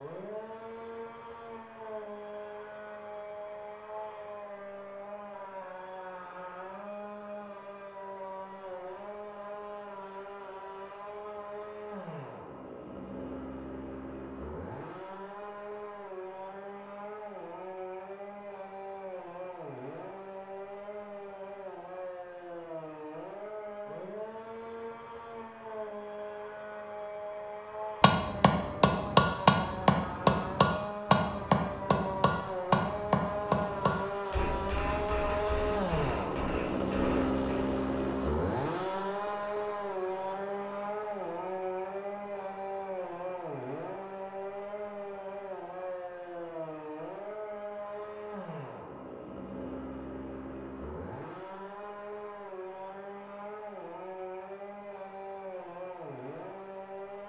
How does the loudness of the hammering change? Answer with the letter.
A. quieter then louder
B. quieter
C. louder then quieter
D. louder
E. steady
B.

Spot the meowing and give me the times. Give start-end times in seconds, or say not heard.
not heard.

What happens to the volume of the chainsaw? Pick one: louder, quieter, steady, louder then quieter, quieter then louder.
louder then quieter.